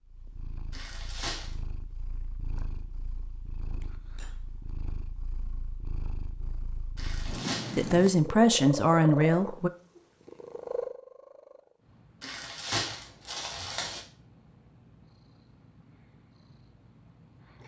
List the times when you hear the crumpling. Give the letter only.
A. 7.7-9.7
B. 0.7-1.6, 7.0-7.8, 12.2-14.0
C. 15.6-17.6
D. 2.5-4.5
B.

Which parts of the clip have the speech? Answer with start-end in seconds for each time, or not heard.
7.7-9.7.